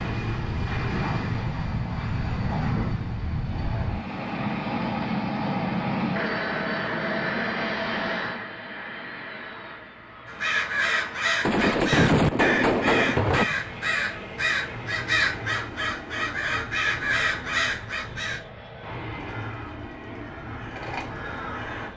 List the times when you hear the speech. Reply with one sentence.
The speech can't be heard in this clip.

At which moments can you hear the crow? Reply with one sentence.
The crow can be heard from 10.2 to 21.9 s.